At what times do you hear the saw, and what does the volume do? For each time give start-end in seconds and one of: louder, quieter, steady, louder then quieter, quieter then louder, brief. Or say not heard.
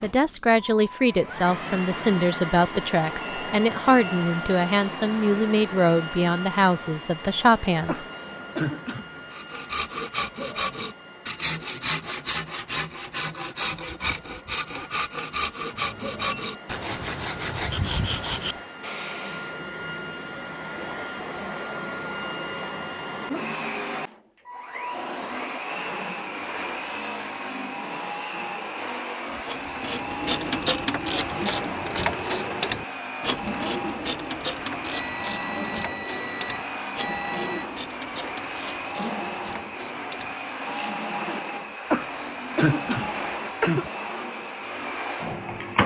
9.3-19.6 steady.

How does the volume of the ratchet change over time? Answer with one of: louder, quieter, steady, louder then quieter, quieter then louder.
quieter.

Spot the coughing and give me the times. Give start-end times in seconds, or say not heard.
7.8-9.2, 41.9-43.9.